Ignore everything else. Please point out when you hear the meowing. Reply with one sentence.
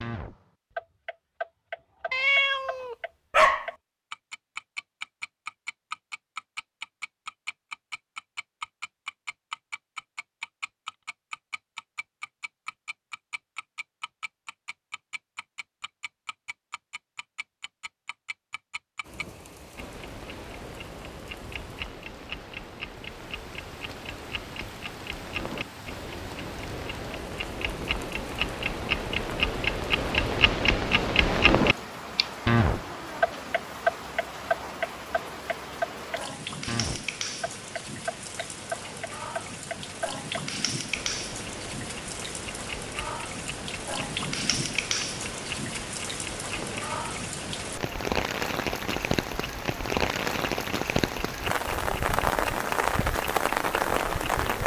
The meowing can be heard from 2.1 to 3.6 s.